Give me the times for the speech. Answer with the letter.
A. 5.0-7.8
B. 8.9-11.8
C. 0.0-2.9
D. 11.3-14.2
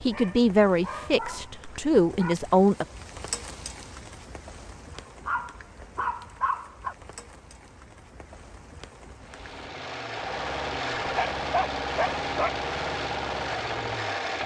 C.